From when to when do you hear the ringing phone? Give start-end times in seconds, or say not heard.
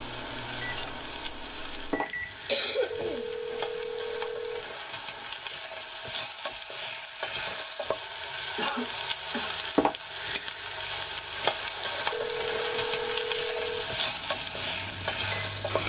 2.9-4.7, 12.1-13.9.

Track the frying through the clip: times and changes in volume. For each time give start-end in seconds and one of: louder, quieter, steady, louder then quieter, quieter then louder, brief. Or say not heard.
0.0-15.8 louder.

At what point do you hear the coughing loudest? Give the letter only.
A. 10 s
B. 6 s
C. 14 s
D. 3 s
D.